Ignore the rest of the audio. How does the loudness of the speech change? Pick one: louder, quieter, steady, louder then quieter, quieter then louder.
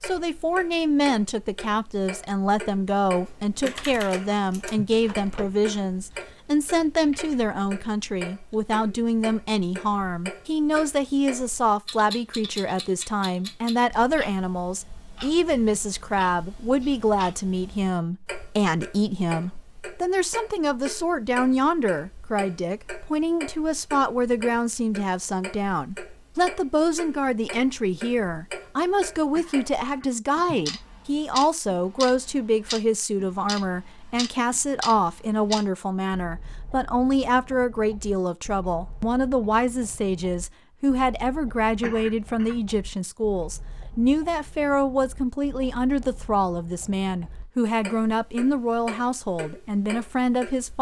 steady.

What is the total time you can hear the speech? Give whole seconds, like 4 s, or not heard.
51 s.